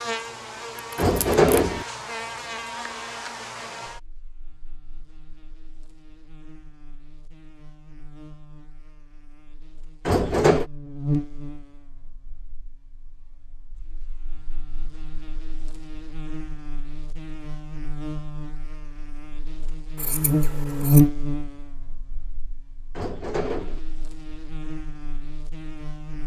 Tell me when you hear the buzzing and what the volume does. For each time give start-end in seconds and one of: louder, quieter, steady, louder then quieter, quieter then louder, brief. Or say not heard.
0.0-26.2 quieter then louder.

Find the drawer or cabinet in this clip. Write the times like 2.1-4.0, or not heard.
0.9-1.9, 10.1-10.7, 22.9-23.8.